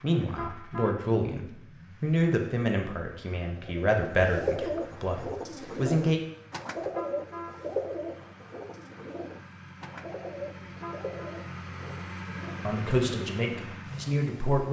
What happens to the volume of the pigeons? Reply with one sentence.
The volume of the pigeons goes down.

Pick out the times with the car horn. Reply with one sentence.
You can hear the car horn from 0.2 to 1.0 s, from 6.8 to 7.5 s and from 10.6 to 11.2 s.